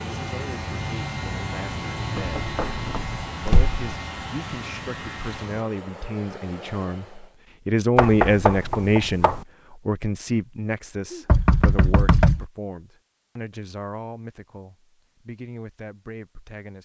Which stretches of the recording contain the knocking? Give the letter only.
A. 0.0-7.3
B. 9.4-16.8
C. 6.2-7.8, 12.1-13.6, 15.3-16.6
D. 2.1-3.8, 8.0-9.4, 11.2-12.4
D.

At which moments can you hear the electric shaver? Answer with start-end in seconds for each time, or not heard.
0.0-5.7.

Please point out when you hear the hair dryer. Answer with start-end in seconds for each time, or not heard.
0.0-7.3.